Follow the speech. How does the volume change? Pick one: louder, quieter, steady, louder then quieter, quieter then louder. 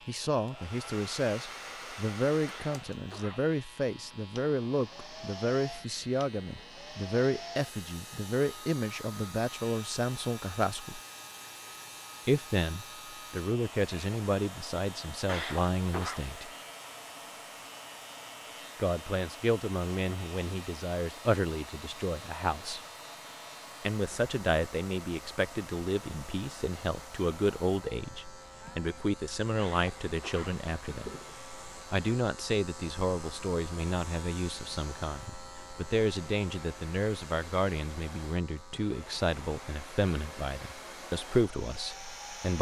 steady.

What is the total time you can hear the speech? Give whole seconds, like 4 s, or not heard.
37 s.